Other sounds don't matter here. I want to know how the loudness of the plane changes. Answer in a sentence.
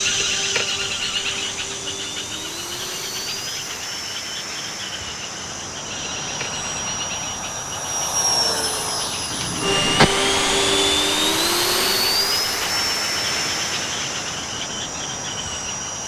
The volume of the plane goes up, then down.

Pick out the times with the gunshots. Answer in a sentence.
You can hear the gunshots from 9.3 to 10.2 s.